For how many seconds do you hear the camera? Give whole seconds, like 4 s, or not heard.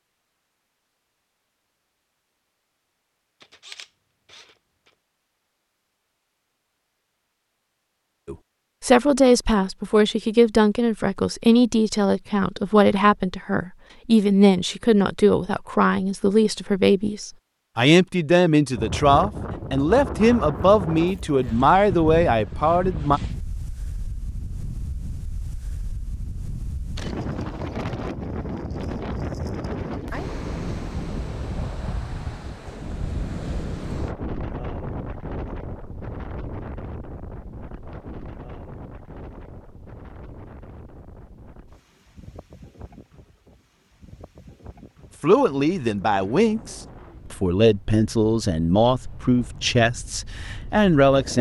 2 s.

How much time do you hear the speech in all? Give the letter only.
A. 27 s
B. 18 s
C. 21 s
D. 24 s
C.